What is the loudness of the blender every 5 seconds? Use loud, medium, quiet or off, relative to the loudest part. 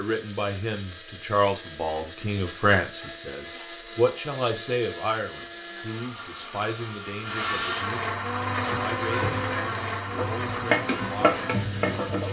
medium, loud, loud.